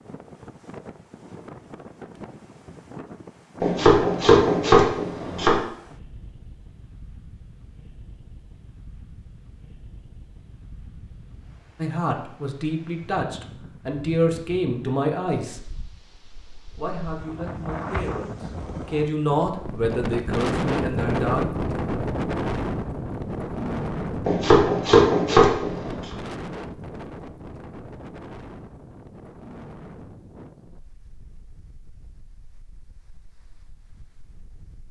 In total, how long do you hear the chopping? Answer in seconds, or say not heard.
4 s.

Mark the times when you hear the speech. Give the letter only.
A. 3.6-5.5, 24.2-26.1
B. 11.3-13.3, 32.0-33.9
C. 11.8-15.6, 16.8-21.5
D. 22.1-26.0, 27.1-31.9
C.